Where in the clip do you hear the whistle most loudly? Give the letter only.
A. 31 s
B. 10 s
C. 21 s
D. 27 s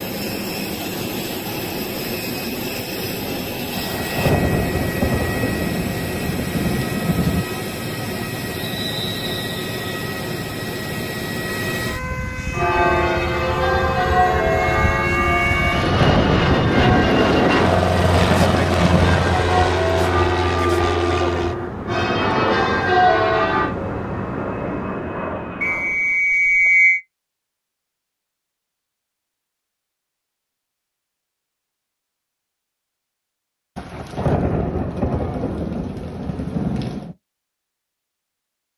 D.